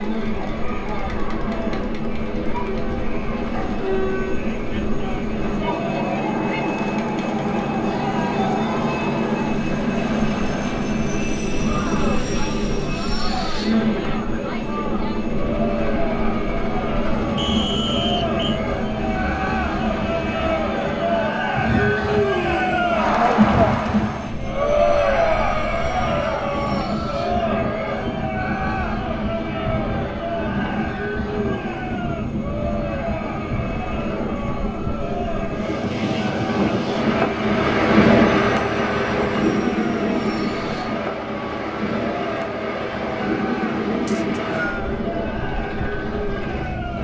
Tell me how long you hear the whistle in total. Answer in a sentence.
The whistle can be heard for 2 seconds in total.